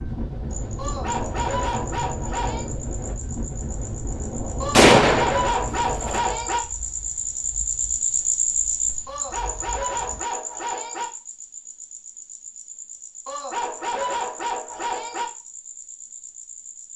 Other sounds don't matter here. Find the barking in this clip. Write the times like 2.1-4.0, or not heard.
0.8-2.7, 4.6-6.6, 9.1-11.1, 13.2-15.2.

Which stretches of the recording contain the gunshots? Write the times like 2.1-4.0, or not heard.
4.8-6.2.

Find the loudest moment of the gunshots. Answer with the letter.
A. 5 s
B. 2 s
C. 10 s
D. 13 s
A.